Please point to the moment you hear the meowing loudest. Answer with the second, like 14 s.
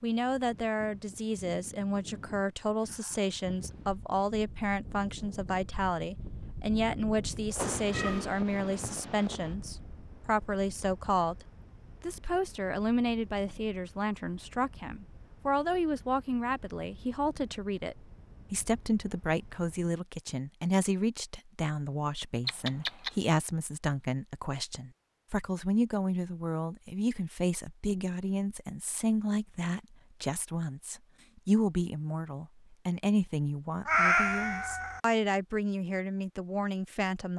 34 s.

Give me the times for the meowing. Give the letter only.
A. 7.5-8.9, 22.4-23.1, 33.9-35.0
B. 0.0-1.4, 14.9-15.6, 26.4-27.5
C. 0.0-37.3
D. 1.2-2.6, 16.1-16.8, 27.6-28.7
A.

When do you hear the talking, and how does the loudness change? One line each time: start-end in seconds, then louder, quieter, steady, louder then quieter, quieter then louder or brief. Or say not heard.
0.0-37.3 steady.